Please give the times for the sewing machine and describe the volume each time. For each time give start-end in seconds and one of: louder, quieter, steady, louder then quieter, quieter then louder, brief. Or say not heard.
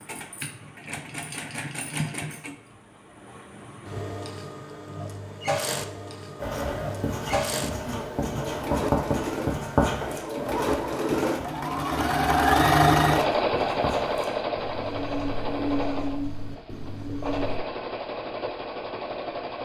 0.0-19.6 louder then quieter.